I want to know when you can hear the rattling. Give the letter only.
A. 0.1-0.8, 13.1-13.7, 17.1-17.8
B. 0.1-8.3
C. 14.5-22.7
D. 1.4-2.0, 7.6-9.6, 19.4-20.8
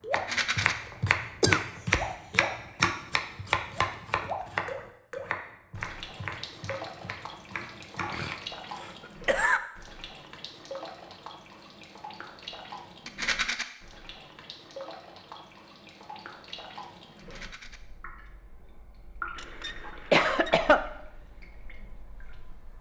A.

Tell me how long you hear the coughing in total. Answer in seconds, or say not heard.
4 s.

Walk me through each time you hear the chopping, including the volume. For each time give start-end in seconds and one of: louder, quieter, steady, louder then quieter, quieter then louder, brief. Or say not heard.
0.1-8.3 quieter.